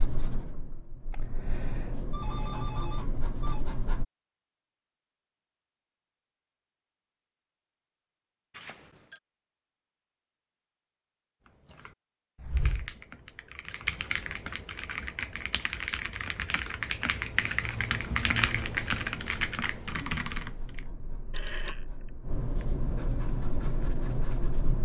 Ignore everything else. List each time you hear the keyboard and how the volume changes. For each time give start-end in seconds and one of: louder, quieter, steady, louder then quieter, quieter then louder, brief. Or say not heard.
11.7-20.8 louder.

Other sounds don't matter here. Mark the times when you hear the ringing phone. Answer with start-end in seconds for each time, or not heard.
2.1-3.6, 8.5-9.2, 21.3-21.8.